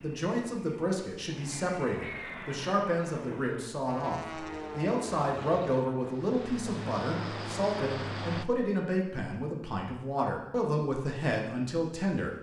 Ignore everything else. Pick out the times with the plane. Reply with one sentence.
You can hear the plane from 0.0 to 8.4 s.